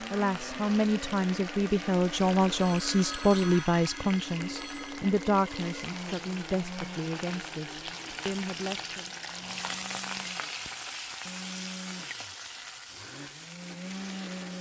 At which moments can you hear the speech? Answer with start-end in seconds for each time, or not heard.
0.0-9.2.